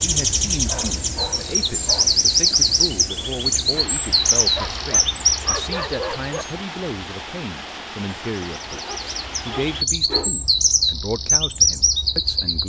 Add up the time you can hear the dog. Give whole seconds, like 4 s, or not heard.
5 s.